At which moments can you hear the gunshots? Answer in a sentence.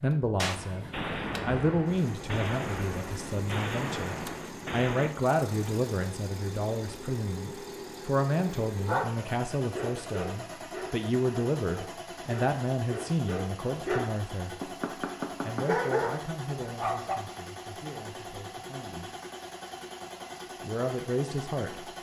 The gunshots can be heard from 0.3 to 5.2 s.